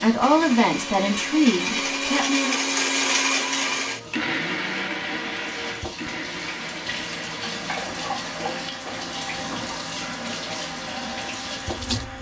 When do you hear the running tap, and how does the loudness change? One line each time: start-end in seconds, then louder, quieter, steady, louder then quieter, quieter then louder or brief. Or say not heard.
0.0-12.1 louder.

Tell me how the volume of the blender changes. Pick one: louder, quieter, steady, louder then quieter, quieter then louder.
quieter.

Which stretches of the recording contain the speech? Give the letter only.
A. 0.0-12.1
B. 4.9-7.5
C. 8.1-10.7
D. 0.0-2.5
D.